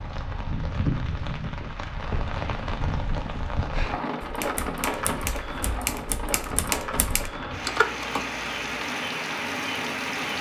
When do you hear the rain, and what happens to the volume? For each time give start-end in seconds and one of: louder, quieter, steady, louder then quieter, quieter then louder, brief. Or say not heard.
0.0-10.3 steady.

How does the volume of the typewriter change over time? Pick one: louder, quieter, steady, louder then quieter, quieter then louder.
louder.